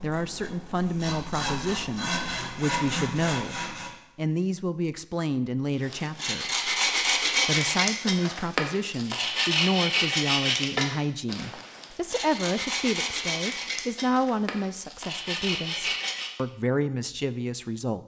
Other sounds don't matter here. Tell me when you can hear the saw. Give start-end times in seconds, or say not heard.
0.0-4.0, 5.8-16.3.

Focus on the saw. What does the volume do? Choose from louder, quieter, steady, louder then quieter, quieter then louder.
louder then quieter.